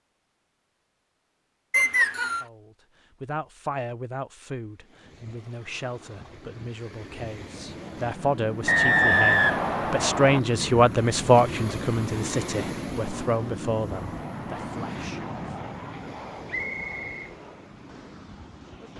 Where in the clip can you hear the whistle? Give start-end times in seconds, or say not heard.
1.7-2.5, 8.7-10.4, 16.4-17.2.